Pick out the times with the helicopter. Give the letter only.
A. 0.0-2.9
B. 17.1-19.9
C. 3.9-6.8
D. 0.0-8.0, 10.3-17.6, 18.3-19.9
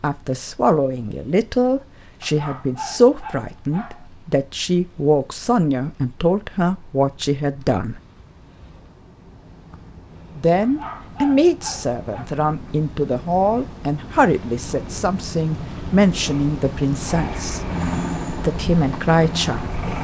B.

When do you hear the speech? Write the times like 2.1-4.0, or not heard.
0.0-8.0, 10.3-17.6, 18.3-19.9.